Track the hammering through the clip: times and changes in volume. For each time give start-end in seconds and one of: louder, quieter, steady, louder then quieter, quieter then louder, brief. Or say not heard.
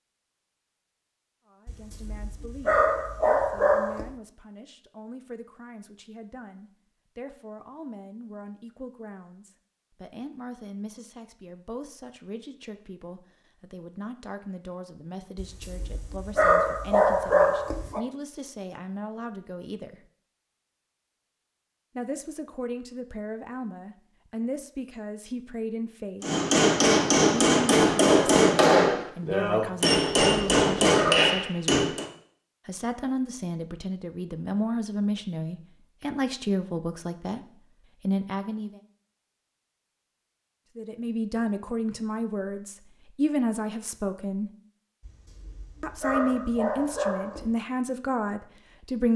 26.2-32.0 steady.